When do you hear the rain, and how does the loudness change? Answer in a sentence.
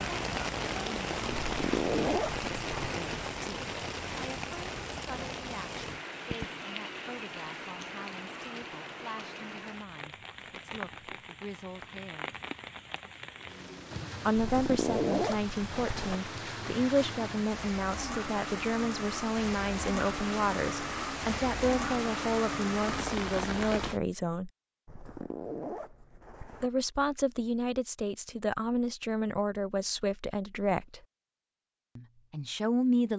You can hear the rain from 0.0 to 24.0 s, getting quieter then louder.